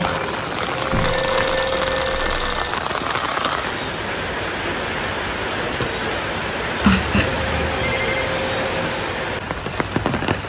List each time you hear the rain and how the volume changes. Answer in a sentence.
You can hear the rain from 0.0 to 10.4 s, at a steady volume.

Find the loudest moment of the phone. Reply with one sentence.
The volume of the phone peaks at 7 seconds.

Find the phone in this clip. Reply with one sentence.
You can hear the phone from 0.9 to 2.8 s and from 6.8 to 8.2 s.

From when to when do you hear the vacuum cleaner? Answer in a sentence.
You can hear the vacuum cleaner from 0.0 to 2.2 s and from 7.3 to 9.0 s.